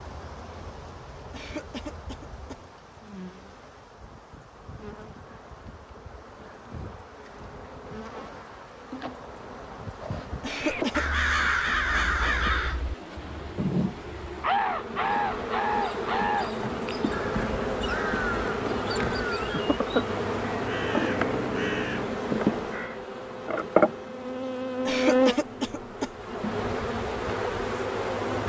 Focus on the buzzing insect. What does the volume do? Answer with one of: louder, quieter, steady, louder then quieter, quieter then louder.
louder.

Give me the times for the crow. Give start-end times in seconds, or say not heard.
10.6-23.0.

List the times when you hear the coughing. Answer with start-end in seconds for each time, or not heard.
1.3-2.6, 10.4-11.1, 24.9-26.1.